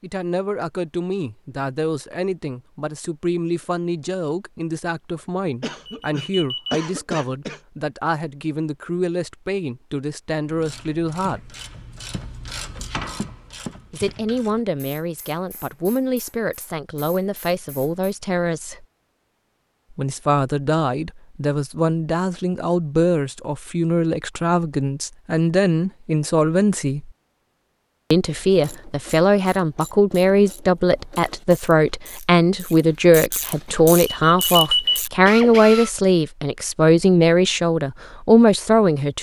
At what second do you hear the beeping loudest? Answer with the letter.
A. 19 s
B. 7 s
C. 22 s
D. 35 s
D.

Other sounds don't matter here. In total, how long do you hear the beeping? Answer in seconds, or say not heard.
2 s.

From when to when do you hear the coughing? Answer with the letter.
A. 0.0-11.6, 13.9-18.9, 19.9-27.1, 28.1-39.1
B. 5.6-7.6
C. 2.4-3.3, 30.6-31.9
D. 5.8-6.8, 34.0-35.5
B.